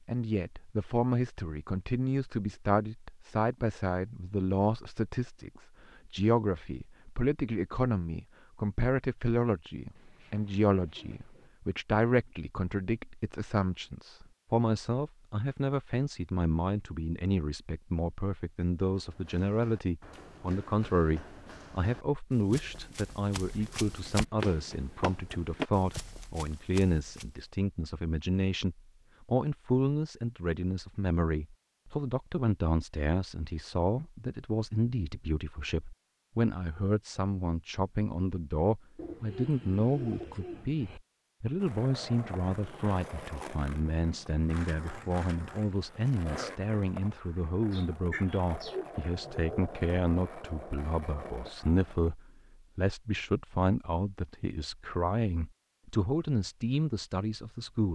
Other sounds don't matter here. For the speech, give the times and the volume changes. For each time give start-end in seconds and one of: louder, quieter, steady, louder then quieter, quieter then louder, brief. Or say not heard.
0.1-57.9 steady.